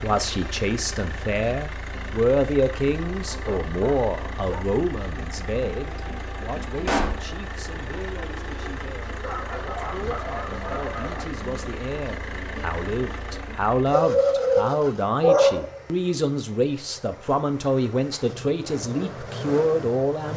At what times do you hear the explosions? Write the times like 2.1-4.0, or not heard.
6.8-7.2.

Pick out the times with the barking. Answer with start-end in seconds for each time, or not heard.
3.2-4.8, 9.2-11.2, 13.9-15.8.